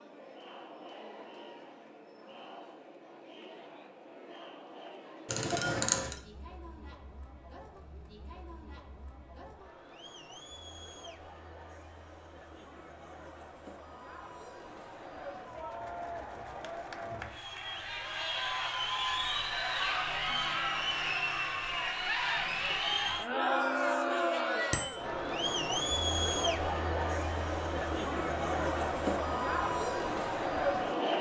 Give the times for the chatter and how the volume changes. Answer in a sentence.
The chatter can be heard from 0.0 to 31.1 s, getting louder.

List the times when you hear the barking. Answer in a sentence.
The barking can't be heard in this clip.